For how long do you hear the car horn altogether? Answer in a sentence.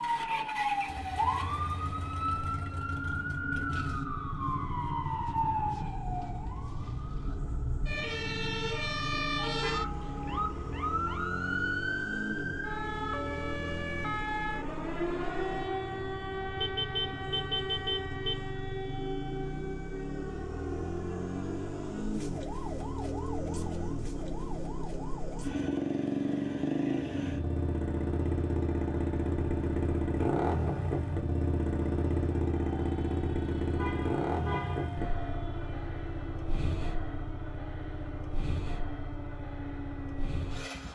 The car horn can be heard for 4 seconds in total.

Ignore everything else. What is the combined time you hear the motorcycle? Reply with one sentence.
You can hear the motorcycle for 41 seconds altogether.